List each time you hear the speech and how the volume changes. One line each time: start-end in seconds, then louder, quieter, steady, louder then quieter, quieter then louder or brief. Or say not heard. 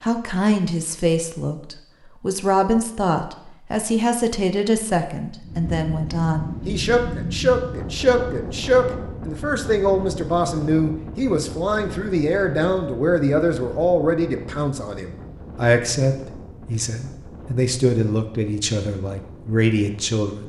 0.0-20.4 steady.